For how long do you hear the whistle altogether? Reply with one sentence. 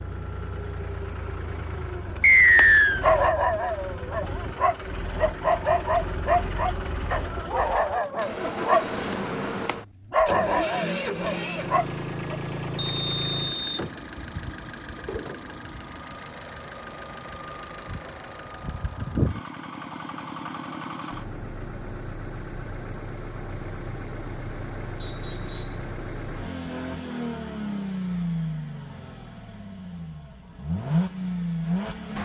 You can hear the whistle for 3 seconds altogether.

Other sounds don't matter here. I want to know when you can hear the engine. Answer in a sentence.
You can hear the engine from 0.0 to 32.2 s.